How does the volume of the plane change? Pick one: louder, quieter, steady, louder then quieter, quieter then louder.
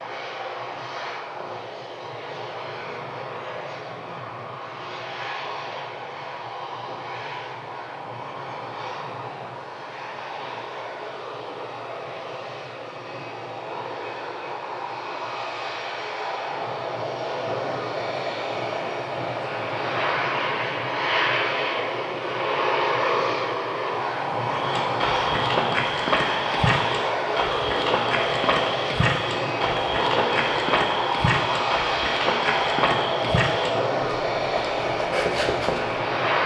louder.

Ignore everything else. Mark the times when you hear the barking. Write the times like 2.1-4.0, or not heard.
not heard.